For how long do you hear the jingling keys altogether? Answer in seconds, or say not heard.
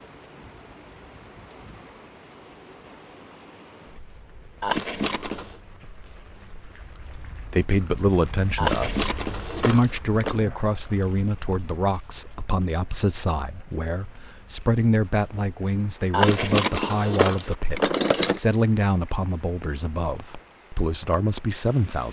5 s.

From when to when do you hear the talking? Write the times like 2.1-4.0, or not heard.
7.5-22.0.